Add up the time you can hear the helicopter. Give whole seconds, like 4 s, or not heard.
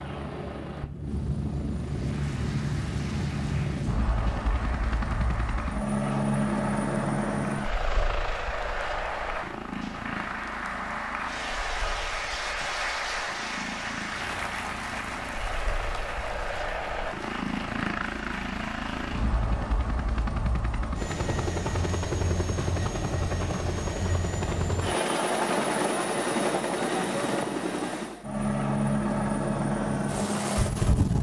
31 s.